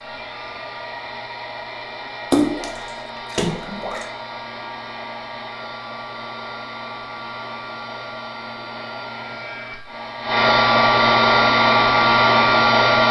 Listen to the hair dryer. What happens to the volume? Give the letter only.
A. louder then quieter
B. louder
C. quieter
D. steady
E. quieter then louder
B.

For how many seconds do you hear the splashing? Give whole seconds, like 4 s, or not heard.
2 s.